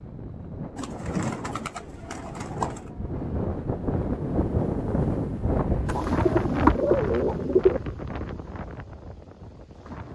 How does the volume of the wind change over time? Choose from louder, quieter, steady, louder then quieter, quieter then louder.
louder then quieter.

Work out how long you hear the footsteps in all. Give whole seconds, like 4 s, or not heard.
not heard.